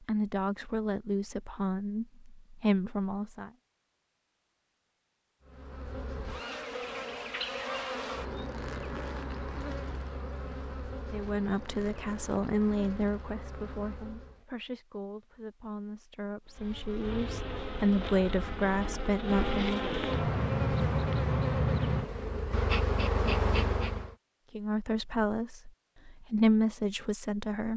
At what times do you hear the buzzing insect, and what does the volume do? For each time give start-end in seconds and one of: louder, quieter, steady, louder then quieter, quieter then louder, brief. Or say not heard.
5.4-14.4 quieter
16.5-24.1 louder.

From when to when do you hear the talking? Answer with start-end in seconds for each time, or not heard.
0.0-3.5, 11.1-19.9, 24.5-27.7.